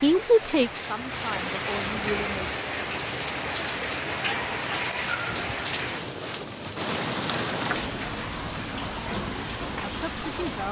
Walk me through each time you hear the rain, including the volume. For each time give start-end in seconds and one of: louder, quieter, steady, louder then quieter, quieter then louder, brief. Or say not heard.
0.0-10.6 steady.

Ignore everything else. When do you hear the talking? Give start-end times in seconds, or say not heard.
0.0-2.6, 9.8-10.6.